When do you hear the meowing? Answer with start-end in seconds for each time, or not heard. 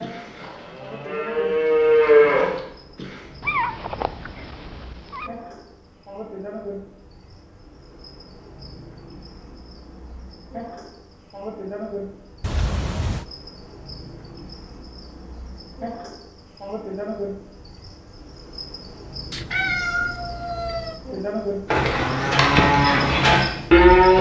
3.4-5.3, 12.4-13.2, 19.3-21.0.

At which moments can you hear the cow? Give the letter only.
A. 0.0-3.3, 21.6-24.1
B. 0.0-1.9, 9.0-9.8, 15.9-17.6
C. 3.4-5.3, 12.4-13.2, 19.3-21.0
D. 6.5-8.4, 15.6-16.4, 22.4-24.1
A.